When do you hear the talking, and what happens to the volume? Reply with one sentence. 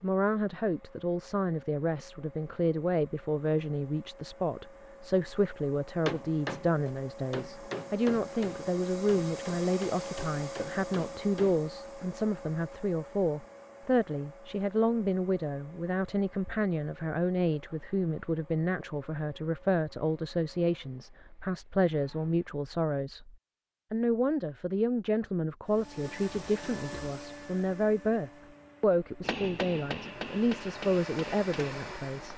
The talking can be heard from 0.0 to 32.3 s, at a steady volume.